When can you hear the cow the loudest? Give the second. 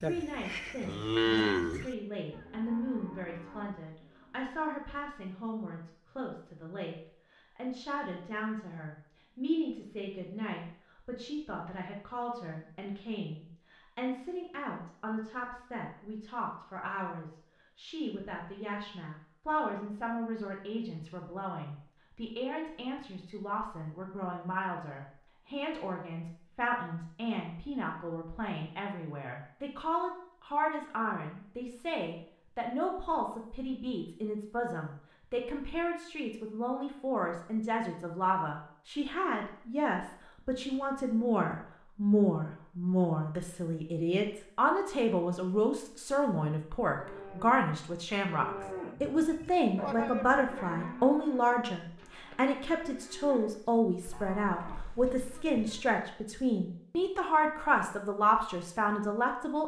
1 s.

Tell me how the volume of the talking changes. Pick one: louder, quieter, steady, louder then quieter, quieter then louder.
louder.